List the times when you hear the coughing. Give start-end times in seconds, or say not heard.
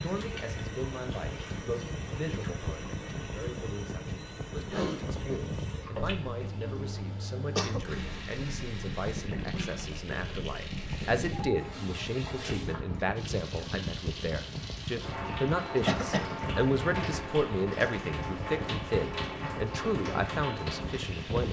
7.5-8.2, 15.8-16.4.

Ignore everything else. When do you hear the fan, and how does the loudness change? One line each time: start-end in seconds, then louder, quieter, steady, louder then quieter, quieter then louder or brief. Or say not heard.
0.0-21.4 steady.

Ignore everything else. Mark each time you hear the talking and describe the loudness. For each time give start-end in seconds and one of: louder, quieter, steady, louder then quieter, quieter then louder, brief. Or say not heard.
0.0-21.4 louder.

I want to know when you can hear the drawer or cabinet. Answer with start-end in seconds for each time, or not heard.
not heard.